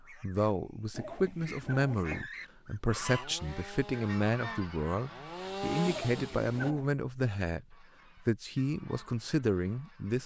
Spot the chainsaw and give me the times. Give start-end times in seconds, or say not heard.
2.4-6.8.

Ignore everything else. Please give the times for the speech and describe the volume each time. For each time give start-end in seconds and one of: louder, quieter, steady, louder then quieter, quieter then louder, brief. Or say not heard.
0.0-10.2 steady.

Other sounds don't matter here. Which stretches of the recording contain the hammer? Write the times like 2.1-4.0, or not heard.
not heard.